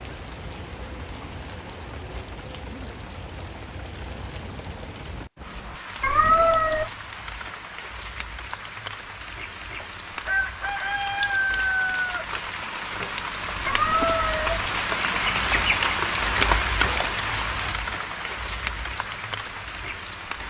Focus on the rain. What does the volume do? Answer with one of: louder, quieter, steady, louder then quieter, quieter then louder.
louder.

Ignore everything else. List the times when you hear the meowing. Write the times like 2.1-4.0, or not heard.
6.0-6.9, 13.7-14.6.